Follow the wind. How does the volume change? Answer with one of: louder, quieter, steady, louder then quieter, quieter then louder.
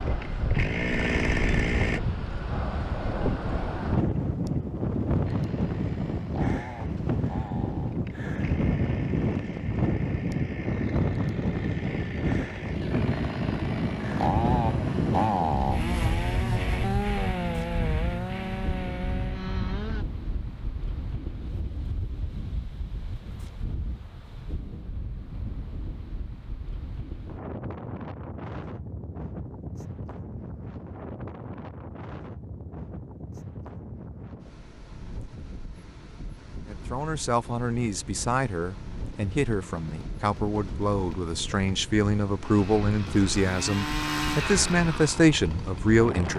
quieter.